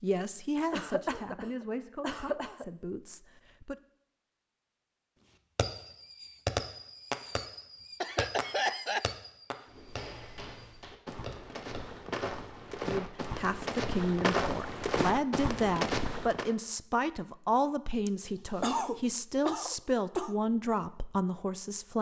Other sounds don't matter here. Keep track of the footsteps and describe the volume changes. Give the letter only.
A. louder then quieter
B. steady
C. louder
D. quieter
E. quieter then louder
C.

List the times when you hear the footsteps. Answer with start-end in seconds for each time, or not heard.
9.7-16.6.